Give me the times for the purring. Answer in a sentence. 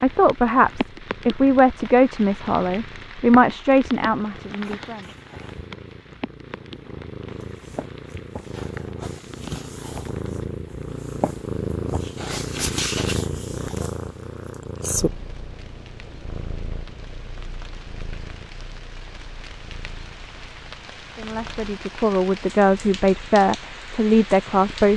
You can hear the purring from 0.0 to 24.9 s.